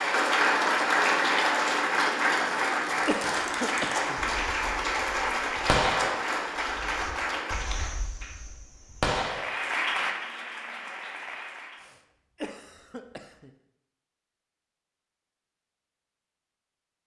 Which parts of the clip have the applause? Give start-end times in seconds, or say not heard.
0.0-8.0, 9.2-11.9.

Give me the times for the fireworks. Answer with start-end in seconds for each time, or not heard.
3.0-9.8.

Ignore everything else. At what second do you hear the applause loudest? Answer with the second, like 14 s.
1 s.